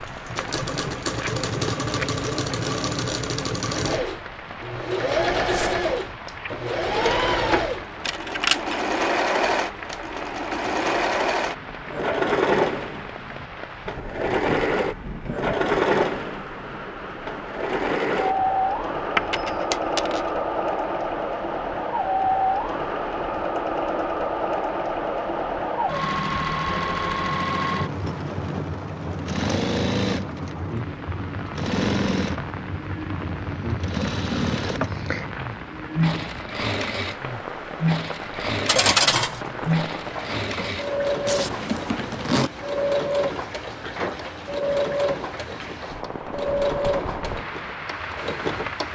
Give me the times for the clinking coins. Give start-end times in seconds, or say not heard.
8.1-8.8, 19.1-20.2, 38.6-39.7.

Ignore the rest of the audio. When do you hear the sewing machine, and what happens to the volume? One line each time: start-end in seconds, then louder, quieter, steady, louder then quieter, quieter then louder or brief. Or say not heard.
0.0-48.9 steady.